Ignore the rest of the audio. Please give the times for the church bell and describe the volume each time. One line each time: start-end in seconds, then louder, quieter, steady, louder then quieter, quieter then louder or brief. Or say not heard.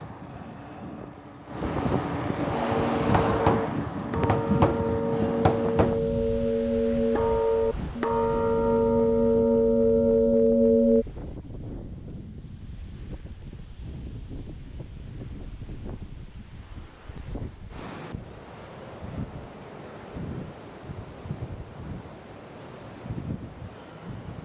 2.5-11.1 louder.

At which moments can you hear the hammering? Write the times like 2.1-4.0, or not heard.
3.1-6.0.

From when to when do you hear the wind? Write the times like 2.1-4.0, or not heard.
0.0-24.3.